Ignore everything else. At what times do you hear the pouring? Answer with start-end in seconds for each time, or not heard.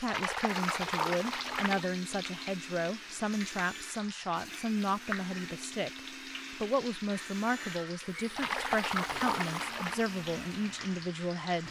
0.1-1.9, 8.3-10.1.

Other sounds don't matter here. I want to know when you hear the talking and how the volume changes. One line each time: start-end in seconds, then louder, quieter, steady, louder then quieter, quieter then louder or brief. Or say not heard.
0.0-11.6 steady.